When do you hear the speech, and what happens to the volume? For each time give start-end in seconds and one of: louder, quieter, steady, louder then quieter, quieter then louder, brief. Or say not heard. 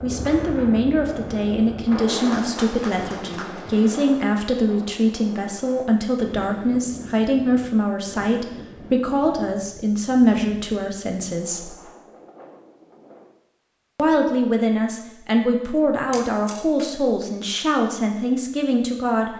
0.0-11.8 steady
13.9-19.3 steady.